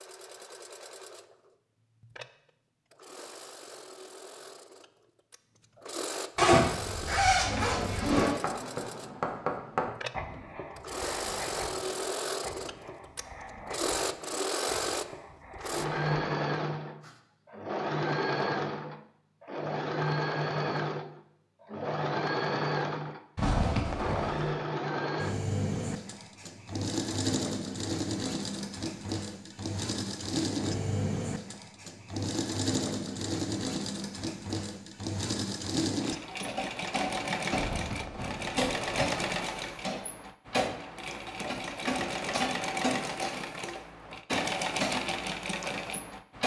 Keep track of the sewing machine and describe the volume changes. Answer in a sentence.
The volume of the sewing machine goes up.